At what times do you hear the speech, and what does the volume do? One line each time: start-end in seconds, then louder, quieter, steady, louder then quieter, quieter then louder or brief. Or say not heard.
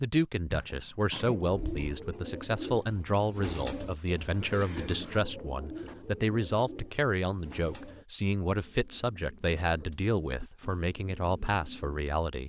0.0-12.4 steady.